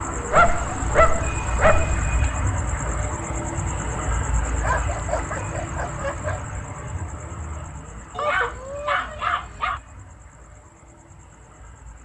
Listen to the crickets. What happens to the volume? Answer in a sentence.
The volume of the crickets goes down.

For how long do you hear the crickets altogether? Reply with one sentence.
You can hear the crickets for 12 seconds altogether.